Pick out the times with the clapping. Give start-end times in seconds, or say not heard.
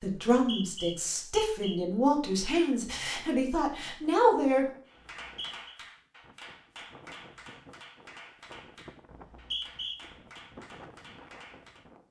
4.8-11.8.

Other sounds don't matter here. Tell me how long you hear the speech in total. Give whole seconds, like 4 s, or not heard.
5 s.